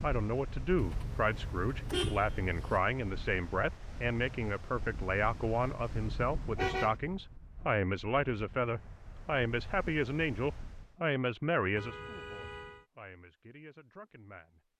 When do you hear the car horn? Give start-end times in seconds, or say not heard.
0.8-2.8, 6.5-7.0, 11.8-12.8.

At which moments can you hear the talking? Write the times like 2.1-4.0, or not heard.
0.0-14.7.